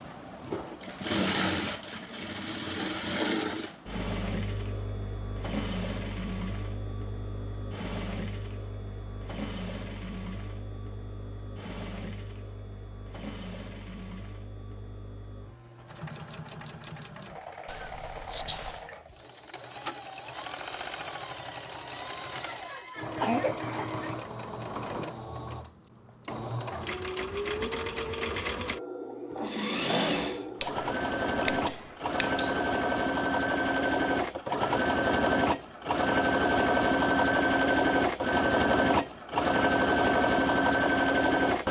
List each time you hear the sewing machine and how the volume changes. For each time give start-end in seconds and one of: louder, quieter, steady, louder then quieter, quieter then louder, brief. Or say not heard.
0.0-41.6 quieter then louder.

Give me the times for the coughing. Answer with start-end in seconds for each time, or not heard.
22.4-24.1.